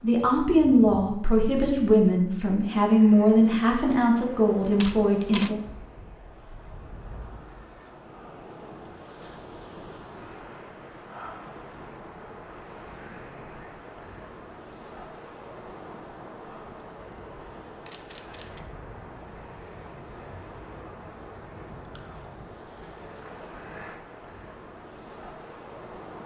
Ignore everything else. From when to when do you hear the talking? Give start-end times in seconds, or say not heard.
0.0-5.5.